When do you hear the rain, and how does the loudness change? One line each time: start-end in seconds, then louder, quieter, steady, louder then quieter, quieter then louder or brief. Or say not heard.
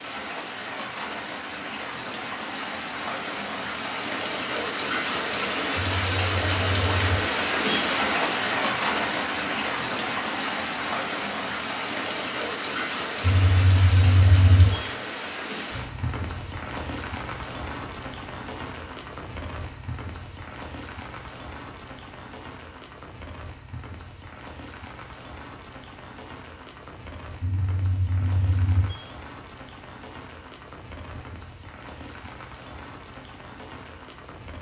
0.0-34.5 quieter.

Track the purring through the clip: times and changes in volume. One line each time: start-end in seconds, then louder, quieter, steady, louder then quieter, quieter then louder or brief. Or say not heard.
not heard.